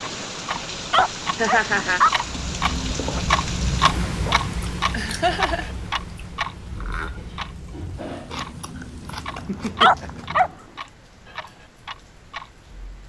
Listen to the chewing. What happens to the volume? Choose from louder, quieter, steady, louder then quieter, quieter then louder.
quieter.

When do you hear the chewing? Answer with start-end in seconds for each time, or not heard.
2.2-10.6.